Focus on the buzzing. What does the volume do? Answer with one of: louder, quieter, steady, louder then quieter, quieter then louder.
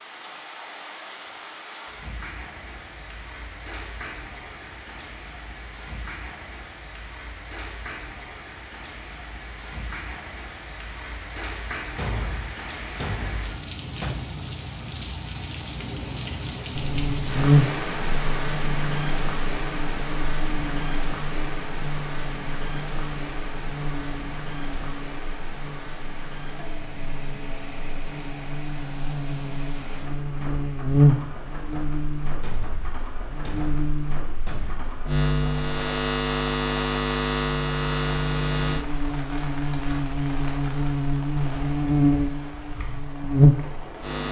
quieter then louder.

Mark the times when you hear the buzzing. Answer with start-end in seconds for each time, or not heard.
16.8-44.2.